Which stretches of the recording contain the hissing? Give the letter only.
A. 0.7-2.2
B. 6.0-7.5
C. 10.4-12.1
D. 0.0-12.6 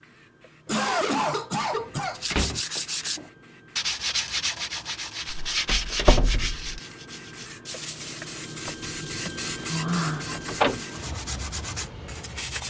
D.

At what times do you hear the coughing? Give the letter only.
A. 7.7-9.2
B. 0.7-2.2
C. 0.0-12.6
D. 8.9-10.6
B.